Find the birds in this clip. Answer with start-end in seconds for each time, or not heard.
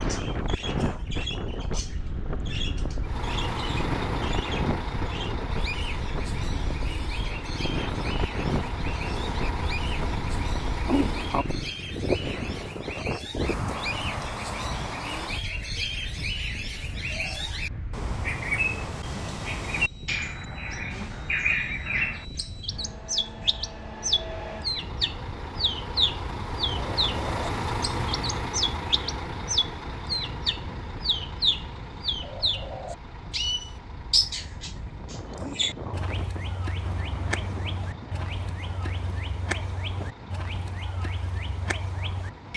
0.0-42.5.